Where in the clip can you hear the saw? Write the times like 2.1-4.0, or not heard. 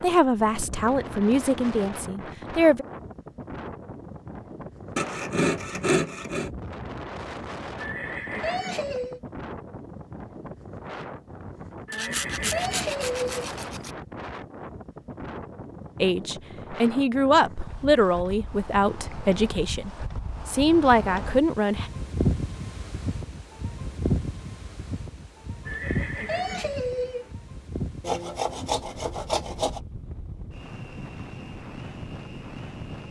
5.0-6.5, 11.9-13.9, 28.0-29.8.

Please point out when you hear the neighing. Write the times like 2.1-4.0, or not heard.
7.8-9.2, 11.8-13.3, 25.6-27.3.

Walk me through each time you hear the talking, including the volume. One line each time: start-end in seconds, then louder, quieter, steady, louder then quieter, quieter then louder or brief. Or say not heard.
0.0-2.9 brief
16.0-21.9 quieter then louder.